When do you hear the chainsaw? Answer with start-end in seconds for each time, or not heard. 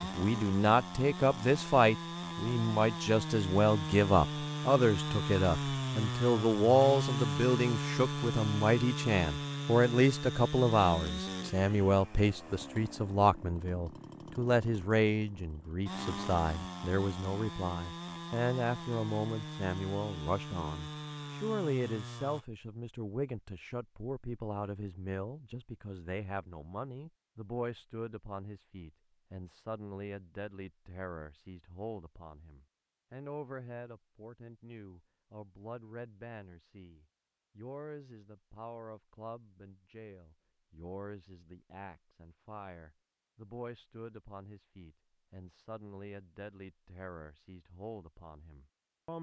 0.0-22.4.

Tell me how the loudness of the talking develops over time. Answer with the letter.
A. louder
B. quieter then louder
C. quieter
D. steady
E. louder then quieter
C.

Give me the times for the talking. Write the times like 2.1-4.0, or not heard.
0.0-49.1.